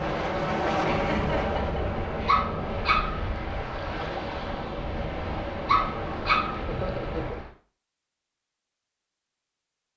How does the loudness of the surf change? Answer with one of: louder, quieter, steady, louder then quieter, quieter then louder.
steady.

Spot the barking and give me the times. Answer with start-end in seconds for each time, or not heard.
2.2-3.2, 5.7-6.6.